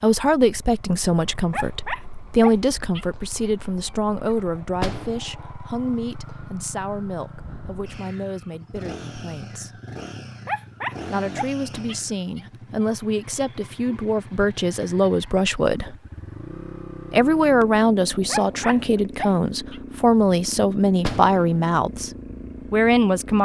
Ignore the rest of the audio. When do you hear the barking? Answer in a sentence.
The barking can be heard from 1.5 to 4.3 s, from 10.4 to 12.8 s and from 18.2 to 19.8 s.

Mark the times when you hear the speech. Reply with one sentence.
You can hear the speech from 0.0 to 9.8 s, from 11.1 to 15.9 s, from 17.1 to 22.1 s and from 22.7 to 23.4 s.